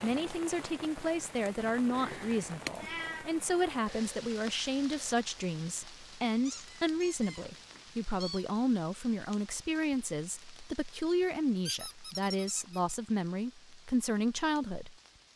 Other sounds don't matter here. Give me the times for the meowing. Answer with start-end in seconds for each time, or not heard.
1.9-3.3.